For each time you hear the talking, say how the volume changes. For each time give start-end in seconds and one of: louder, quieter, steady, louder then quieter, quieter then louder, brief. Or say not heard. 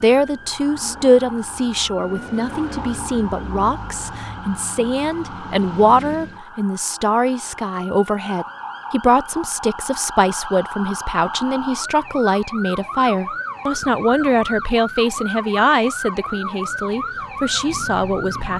0.0-18.5 steady.